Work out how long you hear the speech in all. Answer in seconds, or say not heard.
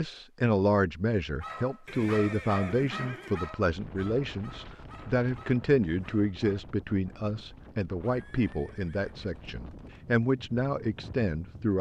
12 s.